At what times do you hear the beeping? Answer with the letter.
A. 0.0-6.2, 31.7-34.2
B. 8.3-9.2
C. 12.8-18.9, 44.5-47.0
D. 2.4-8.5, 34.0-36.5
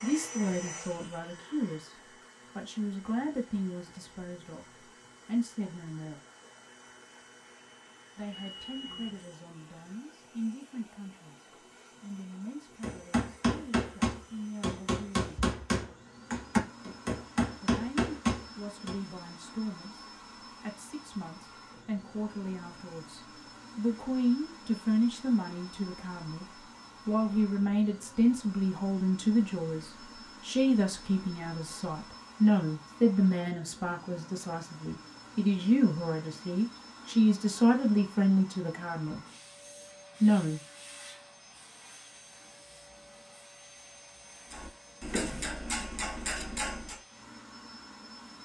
B.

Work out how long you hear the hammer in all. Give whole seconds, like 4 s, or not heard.
9 s.